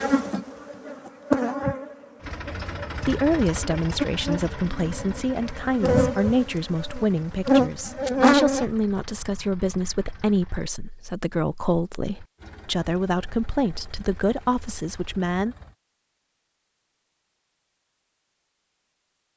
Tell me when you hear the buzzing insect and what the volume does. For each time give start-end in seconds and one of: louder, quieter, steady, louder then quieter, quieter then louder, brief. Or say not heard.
0.0-8.7 quieter then louder.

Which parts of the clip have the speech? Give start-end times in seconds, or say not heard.
3.0-15.6.